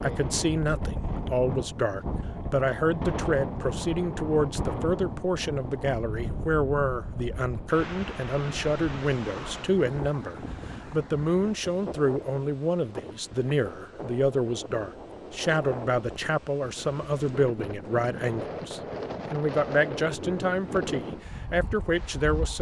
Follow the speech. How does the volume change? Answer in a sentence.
The loudness of the speech stays about the same.